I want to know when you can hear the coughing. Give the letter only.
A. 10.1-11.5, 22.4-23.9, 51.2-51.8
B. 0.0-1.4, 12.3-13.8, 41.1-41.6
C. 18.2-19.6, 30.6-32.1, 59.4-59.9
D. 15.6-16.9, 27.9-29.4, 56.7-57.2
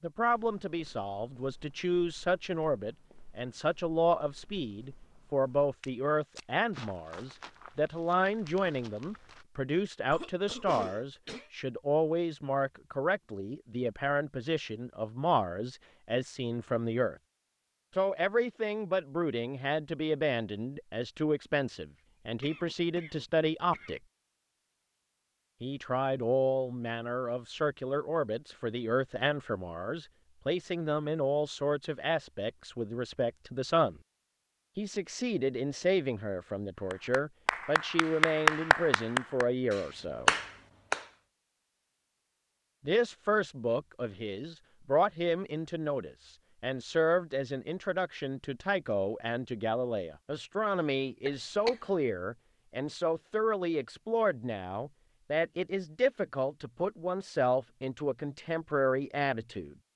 A.